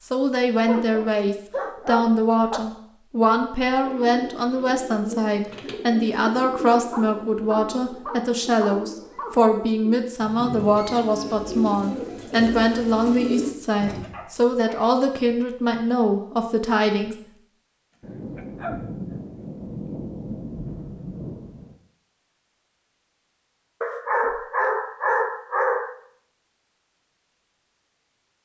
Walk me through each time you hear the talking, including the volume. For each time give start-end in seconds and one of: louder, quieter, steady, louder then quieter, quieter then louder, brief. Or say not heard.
0.0-17.1 steady.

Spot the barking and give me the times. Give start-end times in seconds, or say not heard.
0.7-2.6, 6.8-9.5, 14.1-14.8, 18.4-19.4, 23.8-25.9.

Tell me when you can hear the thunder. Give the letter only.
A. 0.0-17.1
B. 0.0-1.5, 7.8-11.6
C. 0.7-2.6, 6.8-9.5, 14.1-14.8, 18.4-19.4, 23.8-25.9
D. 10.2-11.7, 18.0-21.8
D.